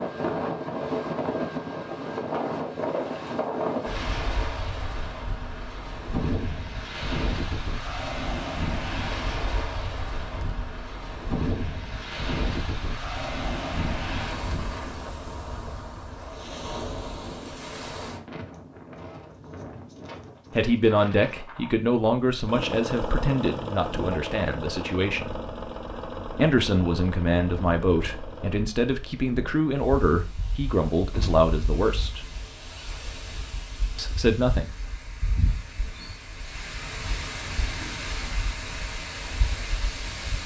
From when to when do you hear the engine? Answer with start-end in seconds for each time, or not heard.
22.4-28.6.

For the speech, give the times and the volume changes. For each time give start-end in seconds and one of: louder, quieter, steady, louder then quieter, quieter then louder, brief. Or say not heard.
20.5-25.4 quieter
26.4-32.2 steady
34.0-34.6 brief.